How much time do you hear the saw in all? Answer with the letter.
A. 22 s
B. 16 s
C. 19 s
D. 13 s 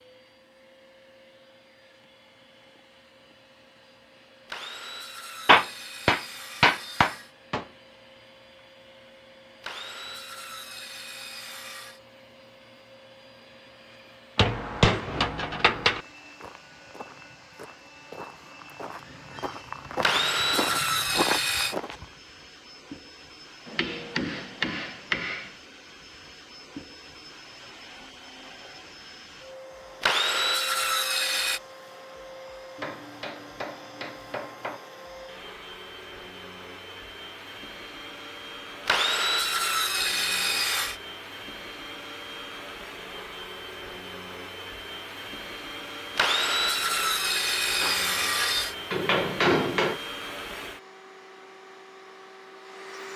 D.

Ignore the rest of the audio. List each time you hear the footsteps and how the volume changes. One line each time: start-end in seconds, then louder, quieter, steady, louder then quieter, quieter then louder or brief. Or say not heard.
15.8-22.1 louder.